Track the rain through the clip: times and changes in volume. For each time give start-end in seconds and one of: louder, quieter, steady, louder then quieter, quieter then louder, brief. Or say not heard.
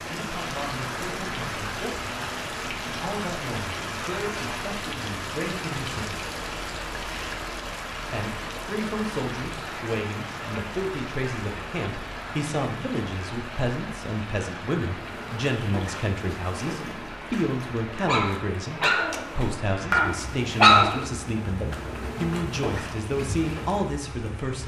0.0-24.6 quieter.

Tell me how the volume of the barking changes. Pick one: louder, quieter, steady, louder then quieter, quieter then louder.
louder then quieter.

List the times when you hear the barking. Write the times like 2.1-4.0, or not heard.
14.9-23.9.